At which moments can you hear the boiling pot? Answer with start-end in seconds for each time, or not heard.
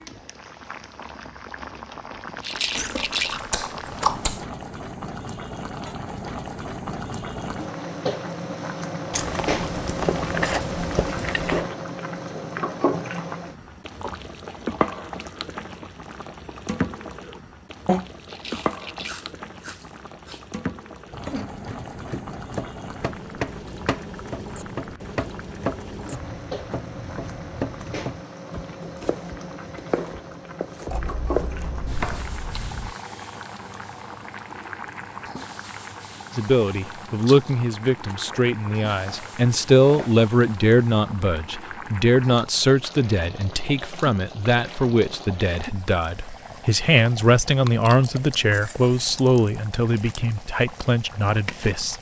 0.0-51.9.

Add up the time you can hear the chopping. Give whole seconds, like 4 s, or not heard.
11 s.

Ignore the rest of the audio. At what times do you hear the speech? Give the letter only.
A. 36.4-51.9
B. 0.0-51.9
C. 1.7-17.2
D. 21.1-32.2
A.